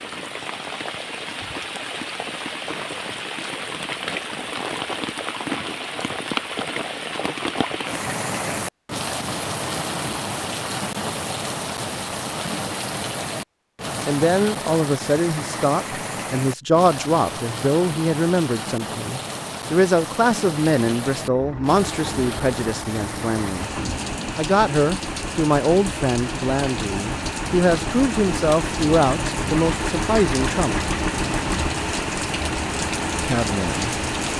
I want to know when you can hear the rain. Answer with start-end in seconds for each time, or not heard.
0.0-34.3.